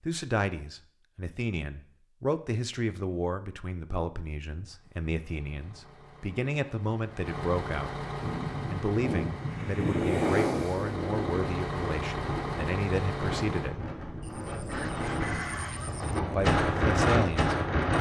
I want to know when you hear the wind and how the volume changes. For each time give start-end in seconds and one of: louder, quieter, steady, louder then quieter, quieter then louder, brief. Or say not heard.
8.2-17.9 quieter then louder.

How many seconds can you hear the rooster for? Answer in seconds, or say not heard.
2 s.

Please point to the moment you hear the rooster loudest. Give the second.
15 s.